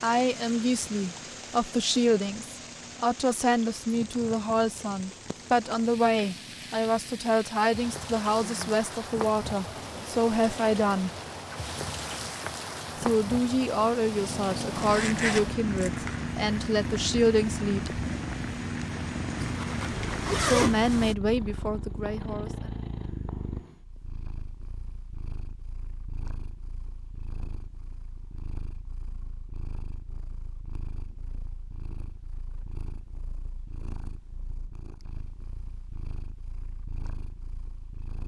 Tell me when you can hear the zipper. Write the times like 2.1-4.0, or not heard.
14.7-16.1, 19.4-21.1.